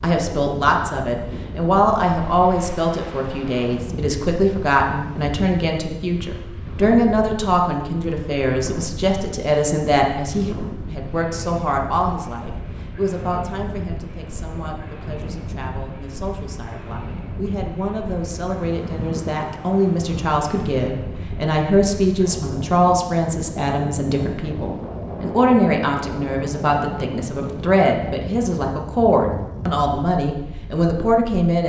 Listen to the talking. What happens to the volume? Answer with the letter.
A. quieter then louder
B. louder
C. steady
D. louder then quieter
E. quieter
A.